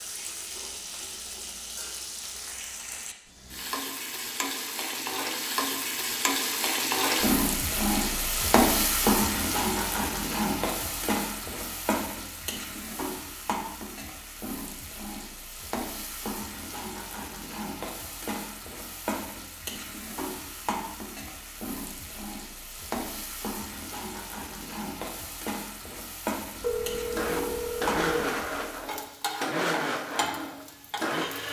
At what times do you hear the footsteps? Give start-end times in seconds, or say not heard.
not heard.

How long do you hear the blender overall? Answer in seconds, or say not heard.
4 s.